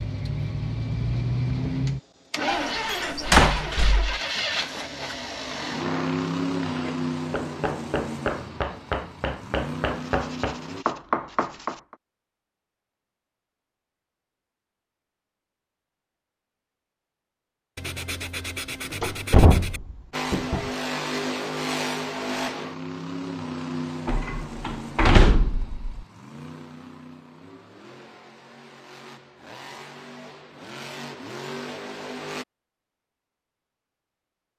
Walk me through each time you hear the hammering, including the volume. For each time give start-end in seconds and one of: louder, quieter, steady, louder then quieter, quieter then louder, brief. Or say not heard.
5.3-11.9 louder.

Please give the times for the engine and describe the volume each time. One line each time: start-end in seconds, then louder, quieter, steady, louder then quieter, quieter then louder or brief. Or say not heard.
0.0-10.8 quieter
20.1-32.5 quieter then louder.